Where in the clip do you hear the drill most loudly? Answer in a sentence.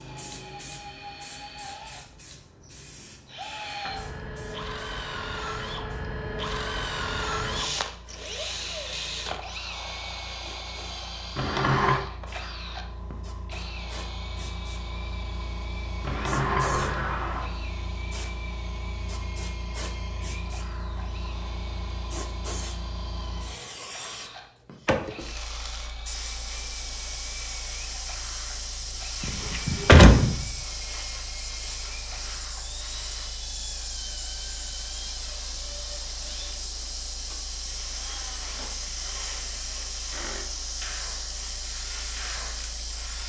The loudest moment of the drill is at 7 seconds.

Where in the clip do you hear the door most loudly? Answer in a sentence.
The loudest moment of the door is at 30 seconds.